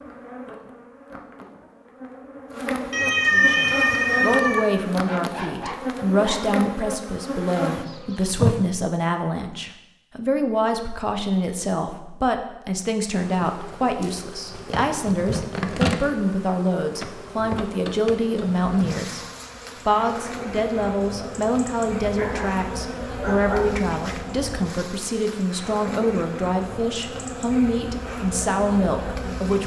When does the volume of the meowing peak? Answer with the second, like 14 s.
3 s.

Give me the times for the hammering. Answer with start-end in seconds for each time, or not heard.
not heard.